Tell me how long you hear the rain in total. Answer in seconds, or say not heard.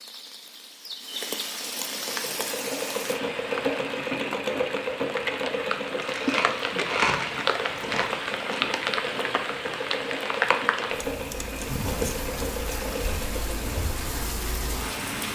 15 s.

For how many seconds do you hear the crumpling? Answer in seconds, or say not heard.
3 s.